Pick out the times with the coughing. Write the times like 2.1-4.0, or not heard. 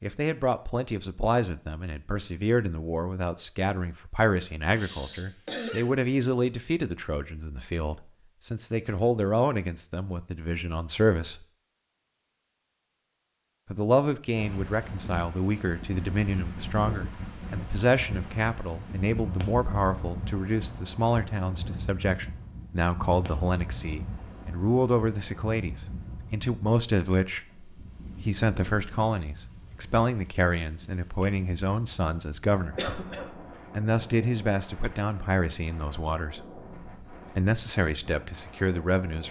4.8-5.8, 32.8-33.5.